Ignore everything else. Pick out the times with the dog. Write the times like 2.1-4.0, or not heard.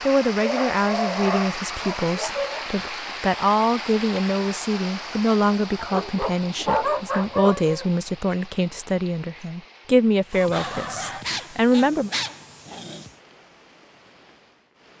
0.4-3.1, 5.8-7.9, 10.3-13.1.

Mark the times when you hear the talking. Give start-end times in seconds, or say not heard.
0.0-12.1.